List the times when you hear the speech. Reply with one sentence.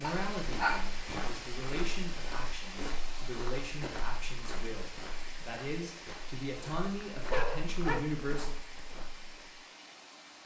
The speech can be heard from 0.0 to 8.6 s.